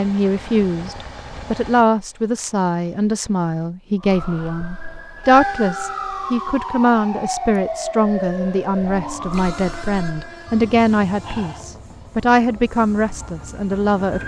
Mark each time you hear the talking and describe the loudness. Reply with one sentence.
The talking can be heard from 0.0 to 14.2 s, at a steady volume.